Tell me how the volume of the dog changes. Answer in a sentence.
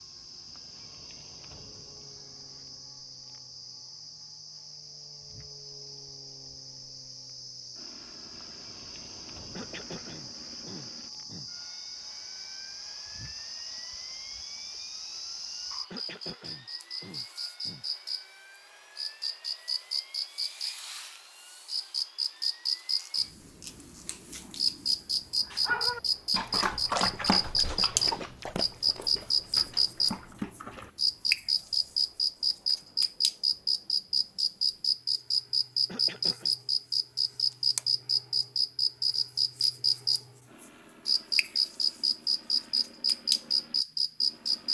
The loudness of the dog goes down, then up.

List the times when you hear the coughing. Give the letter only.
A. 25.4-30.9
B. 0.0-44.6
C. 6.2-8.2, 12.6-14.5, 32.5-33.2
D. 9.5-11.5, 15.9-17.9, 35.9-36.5
D.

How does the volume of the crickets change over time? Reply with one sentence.
The loudness of the crickets goes up.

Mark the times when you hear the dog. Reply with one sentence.
You can hear the dog from 25.4 to 30.9 s.